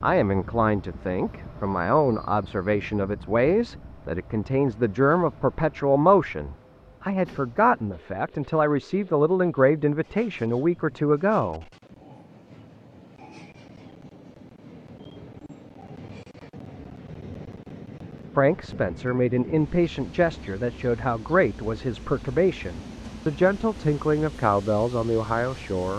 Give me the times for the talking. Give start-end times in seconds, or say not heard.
0.0-11.7, 18.4-25.9.